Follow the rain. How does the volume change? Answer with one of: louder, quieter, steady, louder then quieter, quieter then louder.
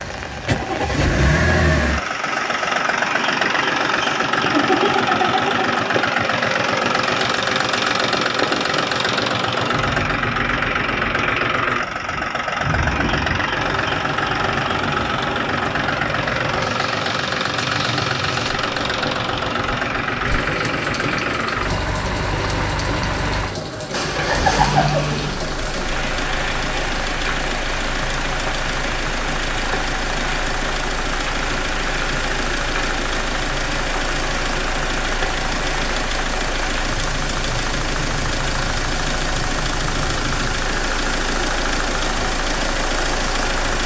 steady.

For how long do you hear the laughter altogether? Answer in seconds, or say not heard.
2 s.